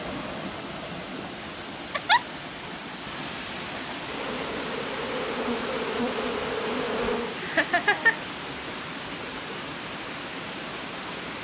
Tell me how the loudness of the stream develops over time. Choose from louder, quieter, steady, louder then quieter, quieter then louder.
steady.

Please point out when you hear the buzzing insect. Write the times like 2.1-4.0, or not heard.
4.0-7.4.